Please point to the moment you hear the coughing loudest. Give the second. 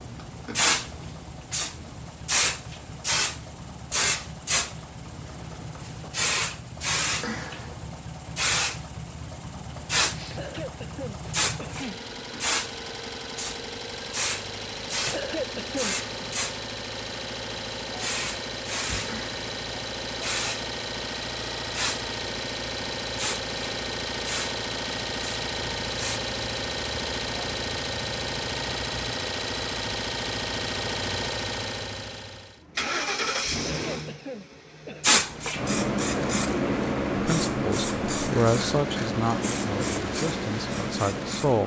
15 s.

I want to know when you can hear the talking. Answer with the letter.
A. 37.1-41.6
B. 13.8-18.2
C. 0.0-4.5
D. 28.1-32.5
A.